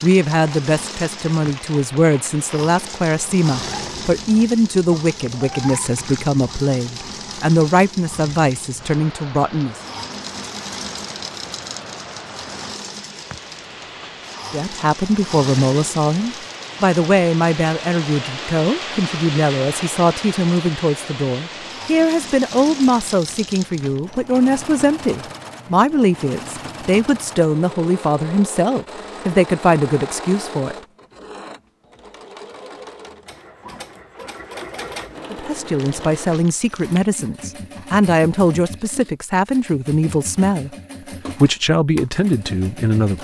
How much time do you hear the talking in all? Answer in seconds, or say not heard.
33 s.